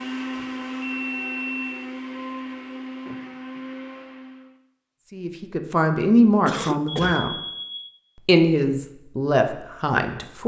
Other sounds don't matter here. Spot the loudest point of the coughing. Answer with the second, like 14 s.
7 s.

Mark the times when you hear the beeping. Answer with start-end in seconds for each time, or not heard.
0.3-1.8, 7.0-7.9.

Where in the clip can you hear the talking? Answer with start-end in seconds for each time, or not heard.
5.1-7.3, 8.2-10.4.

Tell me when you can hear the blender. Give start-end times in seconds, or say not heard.
0.0-4.5.